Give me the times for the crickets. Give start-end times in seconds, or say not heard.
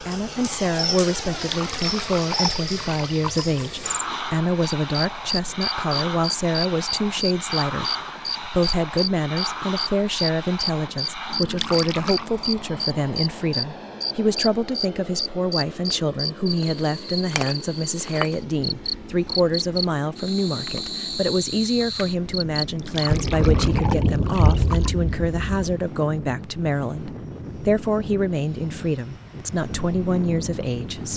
0.0-23.0.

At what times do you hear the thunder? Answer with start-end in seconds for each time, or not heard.
23.1-25.8.